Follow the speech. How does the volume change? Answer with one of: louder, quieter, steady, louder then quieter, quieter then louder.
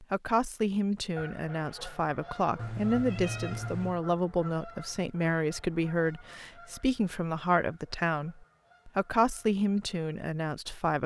steady.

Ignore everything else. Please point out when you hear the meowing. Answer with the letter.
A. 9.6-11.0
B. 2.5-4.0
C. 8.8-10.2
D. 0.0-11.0
B.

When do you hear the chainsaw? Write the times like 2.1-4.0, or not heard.
not heard.